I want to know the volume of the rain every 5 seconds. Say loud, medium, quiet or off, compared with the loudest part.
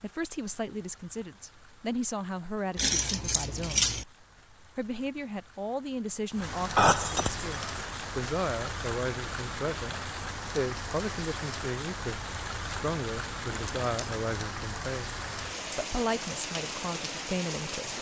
quiet, loud, loud, loud.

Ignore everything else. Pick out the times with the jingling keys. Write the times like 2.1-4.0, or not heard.
2.8-4.0, 6.8-7.7, 13.5-14.2.